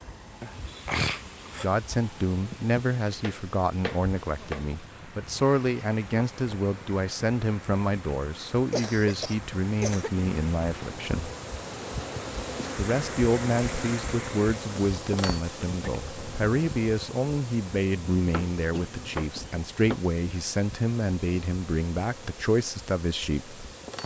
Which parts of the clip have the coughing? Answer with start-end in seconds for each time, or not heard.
0.4-1.6, 8.7-10.1, 18.7-19.6.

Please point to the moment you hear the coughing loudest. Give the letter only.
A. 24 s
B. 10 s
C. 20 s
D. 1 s
D.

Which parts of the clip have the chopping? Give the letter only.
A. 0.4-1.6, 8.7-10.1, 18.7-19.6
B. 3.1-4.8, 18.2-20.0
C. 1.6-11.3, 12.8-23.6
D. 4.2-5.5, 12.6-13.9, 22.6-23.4
B.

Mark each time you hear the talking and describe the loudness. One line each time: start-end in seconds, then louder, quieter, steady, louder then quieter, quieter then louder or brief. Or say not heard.
1.6-11.3 steady
12.8-23.6 steady.